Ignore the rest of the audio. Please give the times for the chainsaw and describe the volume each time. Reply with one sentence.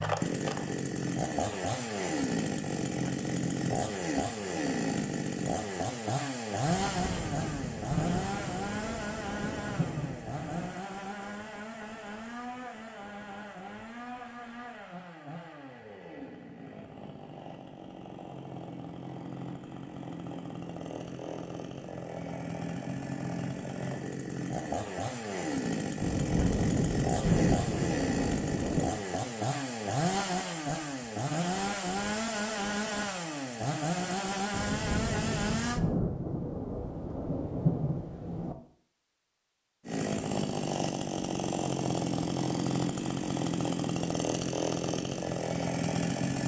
You can hear the chainsaw from 0.0 to 35.8 s, getting quieter then louder; and from 39.9 to 46.4 s, at a steady volume.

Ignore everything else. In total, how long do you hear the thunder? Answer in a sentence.
The thunder can be heard for 11 seconds in total.